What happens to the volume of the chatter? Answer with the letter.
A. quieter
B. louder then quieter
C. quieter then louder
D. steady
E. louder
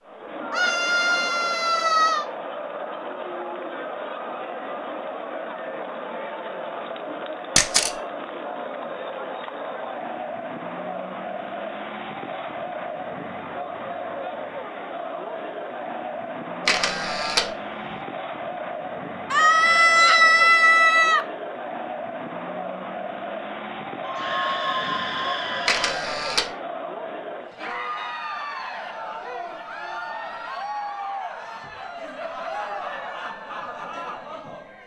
D.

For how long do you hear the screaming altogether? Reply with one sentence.
You can hear the screaming for 6 seconds altogether.